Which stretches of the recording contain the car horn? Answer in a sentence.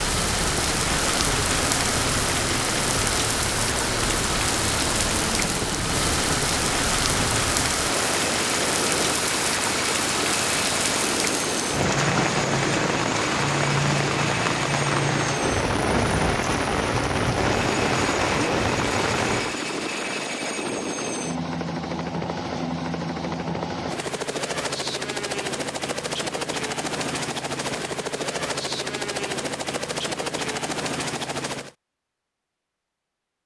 You can't hear the car horn here.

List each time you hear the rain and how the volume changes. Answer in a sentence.
The rain can be heard from 0.0 to 19.6 s, at a steady volume.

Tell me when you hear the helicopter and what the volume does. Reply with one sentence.
The helicopter can be heard from 0.0 to 31.7 s, at a steady volume.